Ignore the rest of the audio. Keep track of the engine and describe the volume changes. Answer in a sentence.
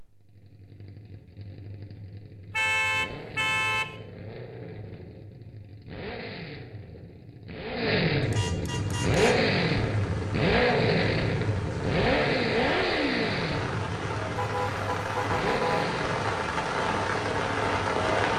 The volume of the engine goes up, then down.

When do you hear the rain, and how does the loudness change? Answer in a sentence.
You can hear the rain from 8.7 to 18.3 s, getting louder.